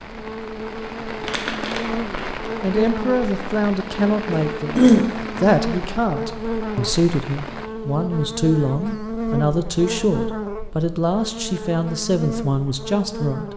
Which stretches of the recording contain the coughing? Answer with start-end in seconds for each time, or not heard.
4.3-5.1.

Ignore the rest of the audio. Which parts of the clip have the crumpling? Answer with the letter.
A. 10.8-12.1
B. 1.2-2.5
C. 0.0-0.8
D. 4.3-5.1
B.